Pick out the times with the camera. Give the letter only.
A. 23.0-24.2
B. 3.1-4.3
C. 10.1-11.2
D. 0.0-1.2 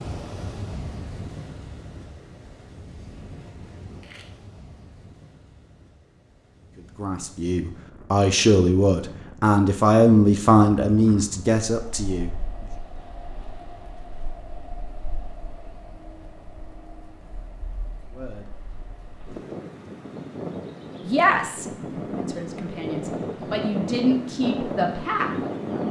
B.